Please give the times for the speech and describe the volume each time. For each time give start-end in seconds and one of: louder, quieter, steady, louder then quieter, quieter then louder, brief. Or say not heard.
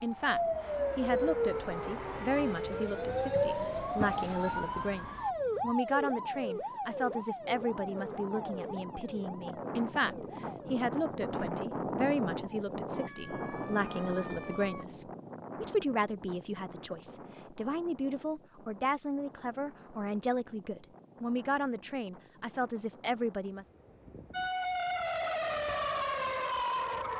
0.0-23.6 steady.